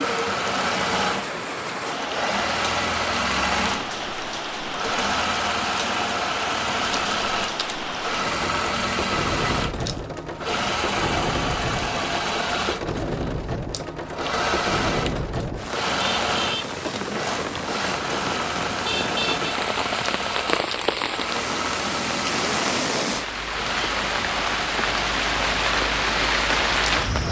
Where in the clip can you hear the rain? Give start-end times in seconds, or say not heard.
0.0-27.2.